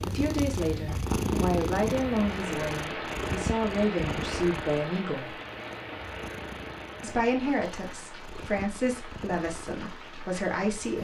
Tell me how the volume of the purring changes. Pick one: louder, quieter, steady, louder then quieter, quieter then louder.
quieter.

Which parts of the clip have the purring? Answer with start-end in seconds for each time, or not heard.
0.0-10.9.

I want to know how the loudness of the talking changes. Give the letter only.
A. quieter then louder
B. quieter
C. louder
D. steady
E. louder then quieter
D.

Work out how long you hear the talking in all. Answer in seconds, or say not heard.
9 s.